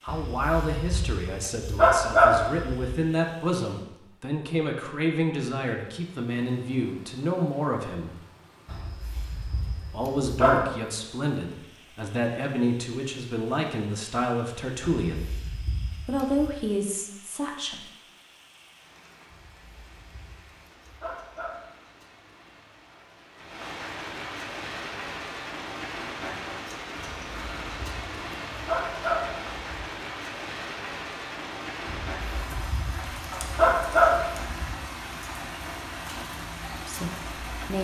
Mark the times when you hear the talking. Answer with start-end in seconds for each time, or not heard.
0.0-8.2, 9.9-15.2, 16.1-17.9, 36.9-37.8.